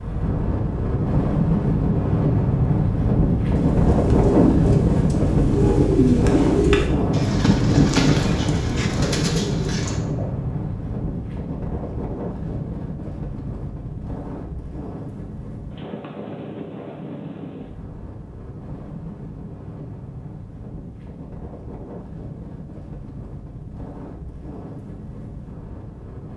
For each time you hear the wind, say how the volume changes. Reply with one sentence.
The wind can be heard from 0.0 to 26.3 s, getting quieter.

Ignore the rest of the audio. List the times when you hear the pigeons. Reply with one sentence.
The pigeons can be heard from 3.5 to 10.2 s.